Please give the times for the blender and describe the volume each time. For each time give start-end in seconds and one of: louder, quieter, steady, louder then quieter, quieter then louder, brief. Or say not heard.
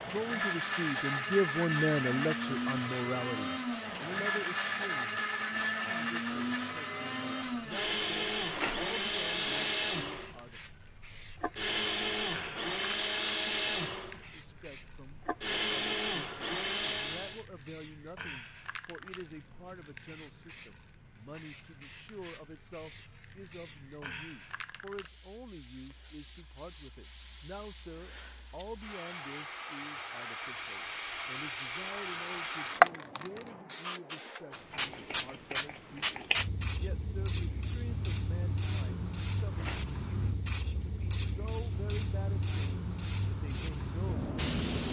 0.0-17.4 steady.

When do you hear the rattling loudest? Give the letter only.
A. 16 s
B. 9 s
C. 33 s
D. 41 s
B.